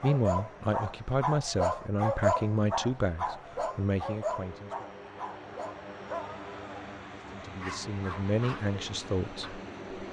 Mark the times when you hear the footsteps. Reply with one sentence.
The footsteps can't be heard in this clip.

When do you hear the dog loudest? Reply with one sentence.
The volume of the dog peaks at 2 seconds.